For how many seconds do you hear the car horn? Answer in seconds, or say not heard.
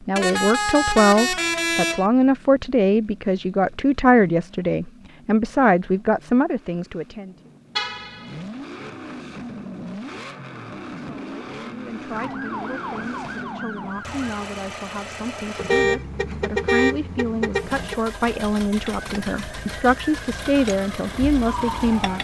5 s.